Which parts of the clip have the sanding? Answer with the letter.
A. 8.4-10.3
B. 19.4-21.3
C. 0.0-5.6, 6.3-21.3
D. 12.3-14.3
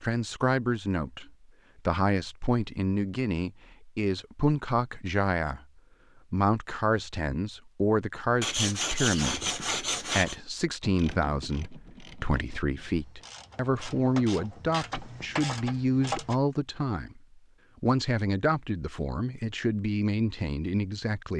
A.